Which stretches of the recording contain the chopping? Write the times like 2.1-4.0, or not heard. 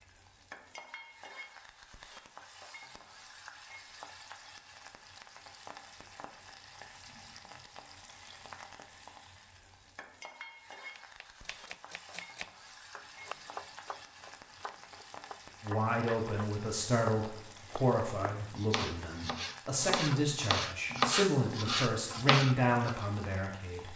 10.9-22.9.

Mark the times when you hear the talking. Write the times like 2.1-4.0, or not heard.
15.6-23.9.